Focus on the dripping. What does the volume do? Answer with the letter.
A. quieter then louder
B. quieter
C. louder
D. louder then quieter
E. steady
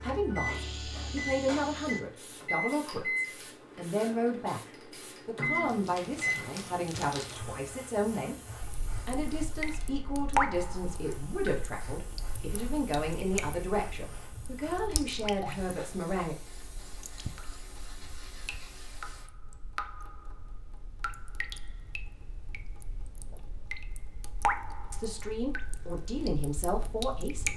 A.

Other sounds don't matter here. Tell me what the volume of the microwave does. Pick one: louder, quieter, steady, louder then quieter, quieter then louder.
steady.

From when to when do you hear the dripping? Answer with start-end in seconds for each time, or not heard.
8.6-27.5.